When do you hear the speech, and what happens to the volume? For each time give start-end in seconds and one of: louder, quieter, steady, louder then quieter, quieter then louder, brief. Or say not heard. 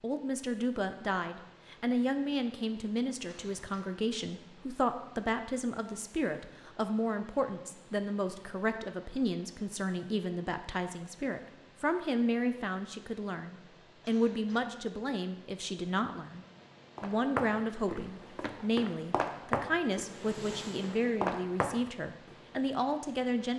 0.0-23.5 steady.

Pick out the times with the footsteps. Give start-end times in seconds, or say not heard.
16.9-22.4.